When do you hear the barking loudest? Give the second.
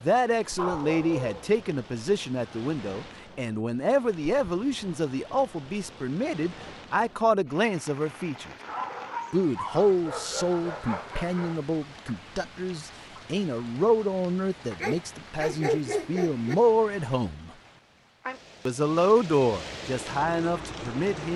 16 s.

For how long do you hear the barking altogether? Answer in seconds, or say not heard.
6 s.